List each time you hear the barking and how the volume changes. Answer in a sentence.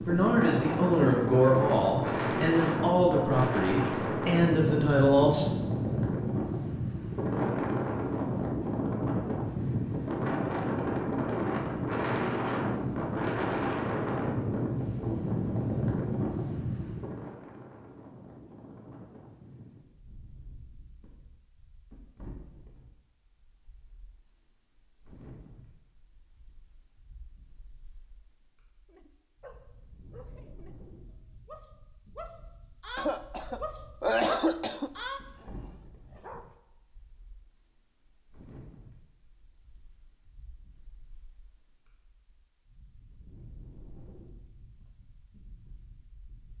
You can hear the barking briefly from 28.9 to 30.8 s; and from 31.4 to 36.5 s, getting louder then quieter.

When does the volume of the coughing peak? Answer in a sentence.
The volume of the coughing peaks at 34 seconds.